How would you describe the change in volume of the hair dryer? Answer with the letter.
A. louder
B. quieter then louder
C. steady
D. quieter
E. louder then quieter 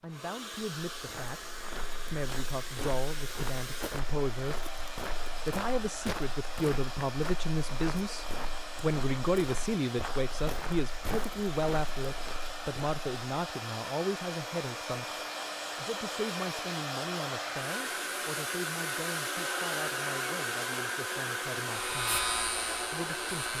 A.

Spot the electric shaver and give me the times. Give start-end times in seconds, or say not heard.
21.6-23.5.